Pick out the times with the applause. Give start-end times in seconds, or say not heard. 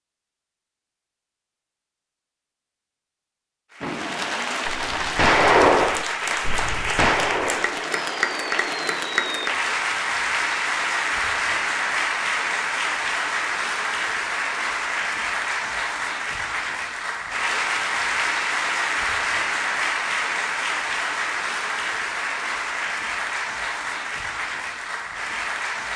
3.7-25.9.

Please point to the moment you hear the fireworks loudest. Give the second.
6 s.